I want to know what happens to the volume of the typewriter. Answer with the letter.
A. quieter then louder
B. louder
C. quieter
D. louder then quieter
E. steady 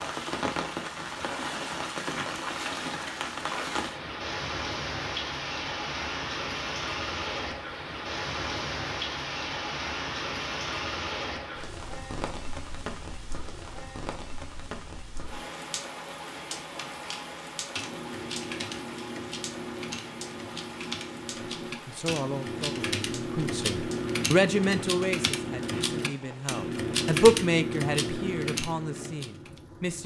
B.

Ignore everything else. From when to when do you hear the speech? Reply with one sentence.
You can hear the speech from 21.9 to 30.0 s.